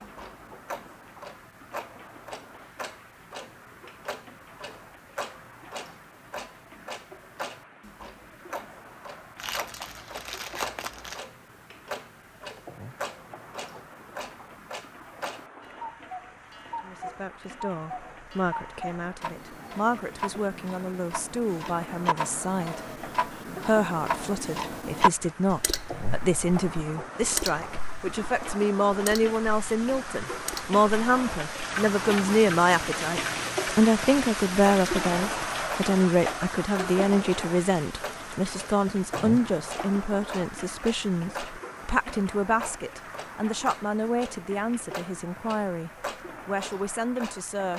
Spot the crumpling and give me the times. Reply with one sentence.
You can hear the crumpling from 9.3 to 11.2 s.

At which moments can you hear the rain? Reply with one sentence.
The rain can be heard from 0.0 to 47.7 s.